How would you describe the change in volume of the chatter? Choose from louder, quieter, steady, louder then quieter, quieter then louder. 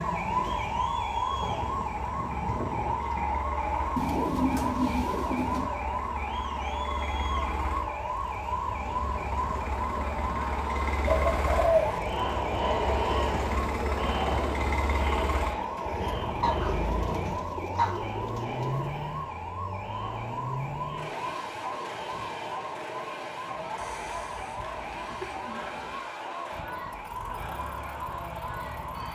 louder then quieter.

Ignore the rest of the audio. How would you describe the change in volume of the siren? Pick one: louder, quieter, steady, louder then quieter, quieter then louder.
quieter.